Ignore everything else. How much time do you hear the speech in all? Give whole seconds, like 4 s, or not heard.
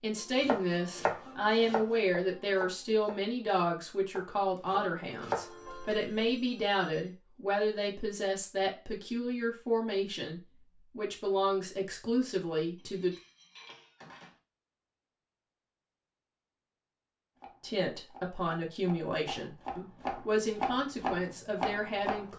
18 s.